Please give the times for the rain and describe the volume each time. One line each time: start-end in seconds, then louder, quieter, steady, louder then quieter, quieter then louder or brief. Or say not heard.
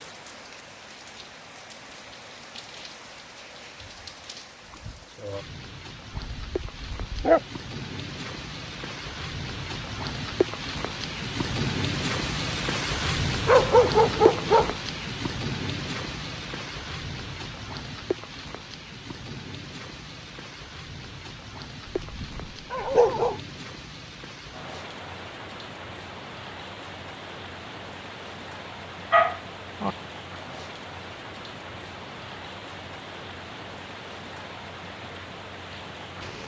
0.0-36.4 louder then quieter.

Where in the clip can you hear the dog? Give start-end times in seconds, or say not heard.
6.2-7.4, 13.4-14.8, 21.9-23.4, 29.1-29.9.